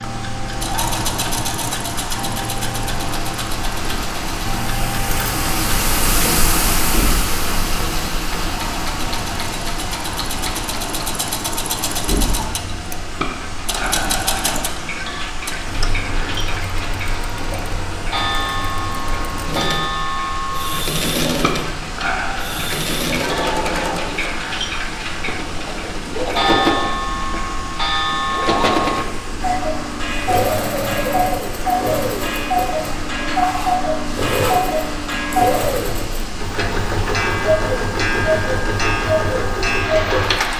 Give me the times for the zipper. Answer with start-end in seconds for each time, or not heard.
not heard.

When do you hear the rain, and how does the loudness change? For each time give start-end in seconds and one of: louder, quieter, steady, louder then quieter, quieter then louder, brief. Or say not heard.
0.0-40.5 quieter.